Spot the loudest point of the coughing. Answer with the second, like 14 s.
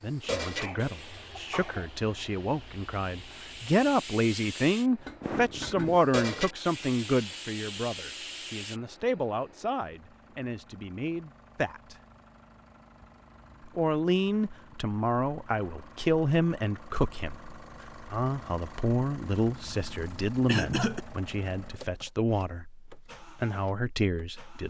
21 s.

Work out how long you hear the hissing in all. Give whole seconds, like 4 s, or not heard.
9 s.